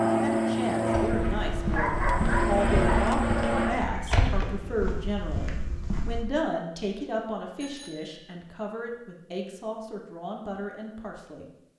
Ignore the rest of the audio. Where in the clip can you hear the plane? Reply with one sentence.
The plane can be heard from 0.0 to 3.9 s.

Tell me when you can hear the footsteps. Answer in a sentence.
You can hear the footsteps from 0.9 to 6.2 s.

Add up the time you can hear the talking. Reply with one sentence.
You can hear the talking for 12 seconds altogether.